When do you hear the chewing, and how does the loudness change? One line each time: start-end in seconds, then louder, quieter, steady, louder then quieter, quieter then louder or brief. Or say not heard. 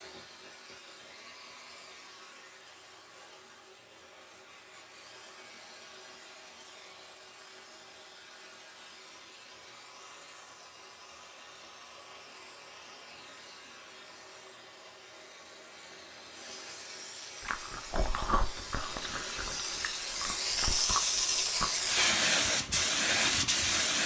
17.4-21.9 quieter then louder.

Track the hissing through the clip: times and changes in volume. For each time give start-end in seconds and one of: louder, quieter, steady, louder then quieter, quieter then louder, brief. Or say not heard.
0.0-24.0 louder.